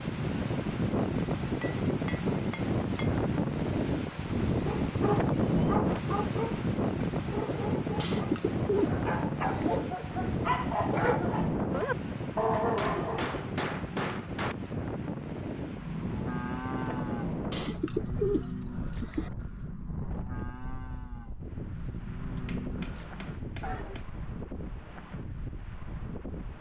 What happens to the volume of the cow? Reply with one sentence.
The loudness of the cow goes down, then up.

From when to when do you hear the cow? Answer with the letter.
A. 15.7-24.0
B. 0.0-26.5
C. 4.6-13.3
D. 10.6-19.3
A.